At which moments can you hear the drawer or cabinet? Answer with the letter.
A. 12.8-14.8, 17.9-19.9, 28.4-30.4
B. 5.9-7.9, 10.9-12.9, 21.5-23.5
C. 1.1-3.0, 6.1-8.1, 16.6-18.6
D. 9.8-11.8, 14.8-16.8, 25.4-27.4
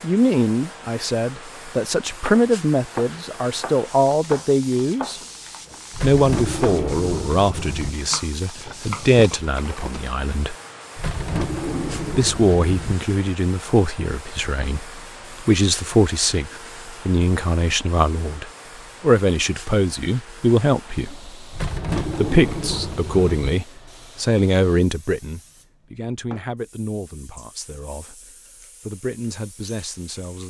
B.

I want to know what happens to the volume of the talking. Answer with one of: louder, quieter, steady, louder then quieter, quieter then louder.
quieter.